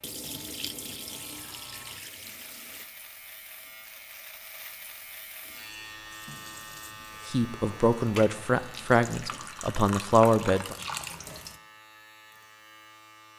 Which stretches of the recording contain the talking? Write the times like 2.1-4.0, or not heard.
7.2-10.8.